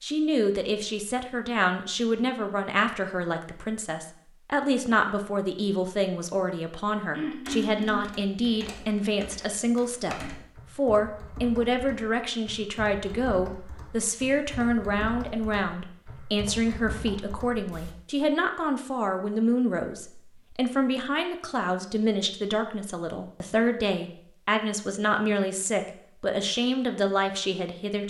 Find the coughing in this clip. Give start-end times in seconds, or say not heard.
7.1-8.2.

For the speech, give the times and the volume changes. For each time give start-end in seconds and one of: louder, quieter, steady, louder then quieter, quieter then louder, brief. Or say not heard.
0.0-28.0 steady.